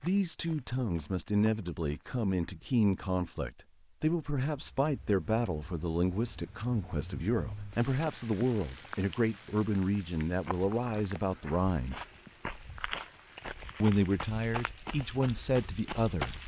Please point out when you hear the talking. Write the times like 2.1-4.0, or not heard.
0.0-12.0, 13.8-16.4.